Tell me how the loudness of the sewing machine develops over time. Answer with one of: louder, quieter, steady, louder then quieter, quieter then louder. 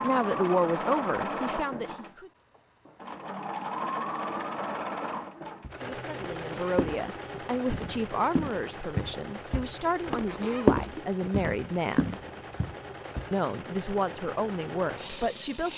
quieter.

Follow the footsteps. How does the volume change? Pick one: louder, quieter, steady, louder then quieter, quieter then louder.
louder then quieter.